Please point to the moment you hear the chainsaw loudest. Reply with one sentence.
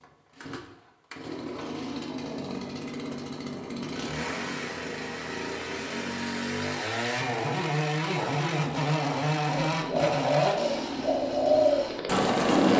The volume of the chainsaw peaks at 9 seconds.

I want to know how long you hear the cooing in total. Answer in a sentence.
You can hear the cooing for 3 seconds altogether.